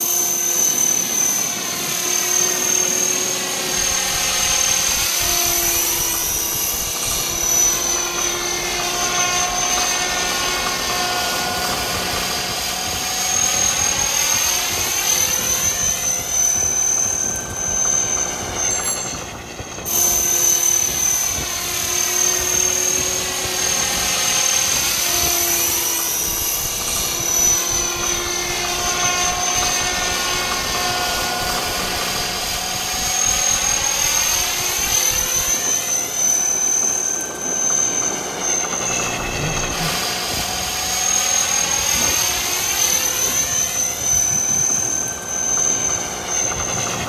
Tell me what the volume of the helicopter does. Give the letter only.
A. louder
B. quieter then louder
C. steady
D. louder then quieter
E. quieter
C.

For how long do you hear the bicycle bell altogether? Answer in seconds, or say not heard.
2 s.